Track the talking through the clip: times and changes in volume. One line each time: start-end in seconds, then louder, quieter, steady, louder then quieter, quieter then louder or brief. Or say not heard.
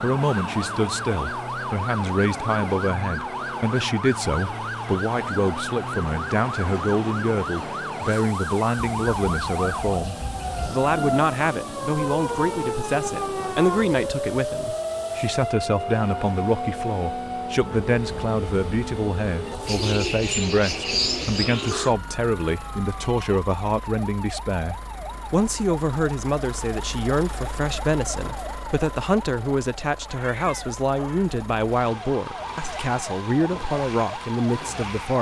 0.0-35.1 steady.